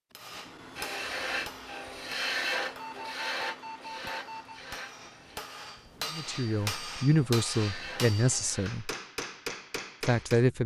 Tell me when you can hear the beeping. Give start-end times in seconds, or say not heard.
2.8-4.6.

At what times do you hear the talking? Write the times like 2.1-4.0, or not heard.
6.1-8.9, 10.0-10.6.